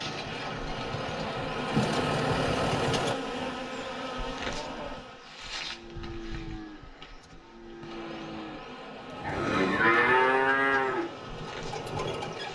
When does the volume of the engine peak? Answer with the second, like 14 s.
2 s.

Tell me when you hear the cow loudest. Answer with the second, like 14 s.
10 s.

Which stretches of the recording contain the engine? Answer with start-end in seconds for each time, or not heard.
0.0-3.1, 10.2-12.4.